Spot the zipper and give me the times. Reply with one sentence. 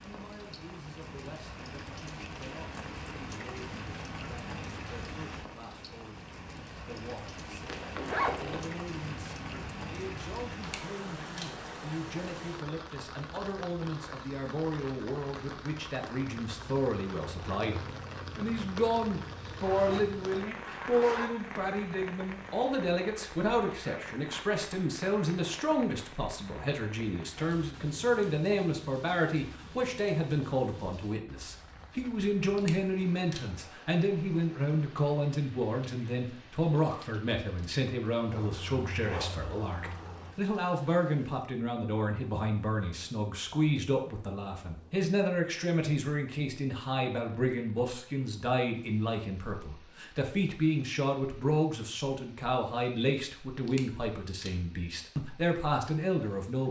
You can hear the zipper from 7.7 to 8.8 s, from 19.6 to 21.4 s and from 38.3 to 40.4 s.